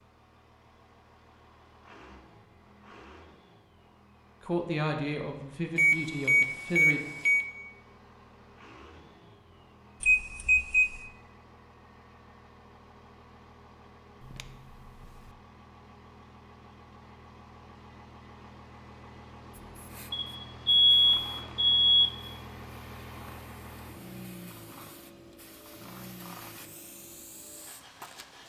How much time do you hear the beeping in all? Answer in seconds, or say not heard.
5 s.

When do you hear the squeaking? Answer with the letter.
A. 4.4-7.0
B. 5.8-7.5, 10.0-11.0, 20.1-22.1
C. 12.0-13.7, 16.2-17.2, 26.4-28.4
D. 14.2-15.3
D.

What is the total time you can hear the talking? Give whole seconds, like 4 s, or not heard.
3 s.